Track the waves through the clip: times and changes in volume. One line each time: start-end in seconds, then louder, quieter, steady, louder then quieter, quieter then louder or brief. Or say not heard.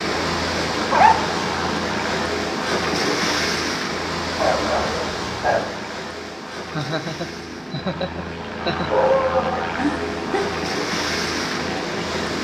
0.0-12.3 quieter then louder.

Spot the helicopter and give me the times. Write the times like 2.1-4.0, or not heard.
0.0-12.3.